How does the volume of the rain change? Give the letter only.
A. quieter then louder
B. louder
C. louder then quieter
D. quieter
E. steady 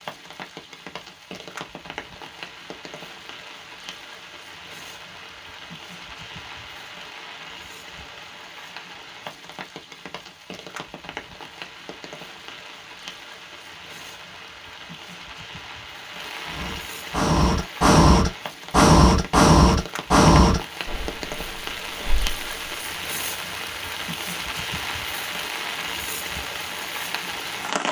B.